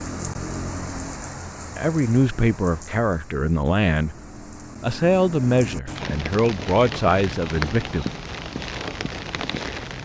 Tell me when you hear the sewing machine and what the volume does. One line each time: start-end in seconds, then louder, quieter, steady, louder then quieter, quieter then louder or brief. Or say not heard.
not heard.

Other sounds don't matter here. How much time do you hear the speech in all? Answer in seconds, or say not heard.
6 s.